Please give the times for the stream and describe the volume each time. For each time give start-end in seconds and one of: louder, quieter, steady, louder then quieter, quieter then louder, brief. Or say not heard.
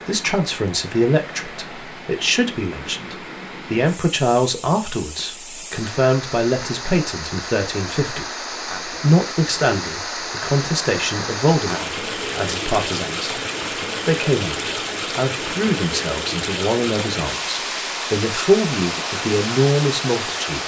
0.0-20.6 louder.